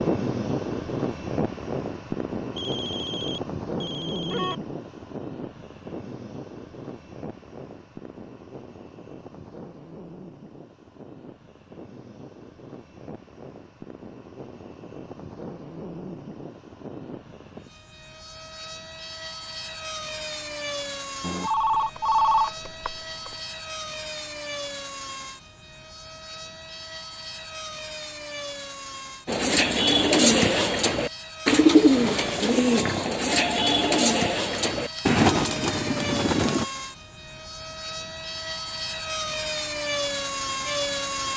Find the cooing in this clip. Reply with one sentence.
The cooing can be heard from 29.2 to 36.6 s.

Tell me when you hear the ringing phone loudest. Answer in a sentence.
The loudest moment of the ringing phone is at 22 seconds.